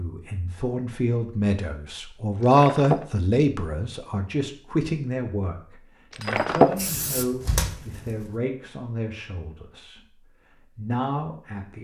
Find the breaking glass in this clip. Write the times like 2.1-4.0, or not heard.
2.4-3.0, 6.1-6.8.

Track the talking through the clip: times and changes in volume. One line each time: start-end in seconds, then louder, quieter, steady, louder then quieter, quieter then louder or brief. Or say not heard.
0.0-11.8 quieter.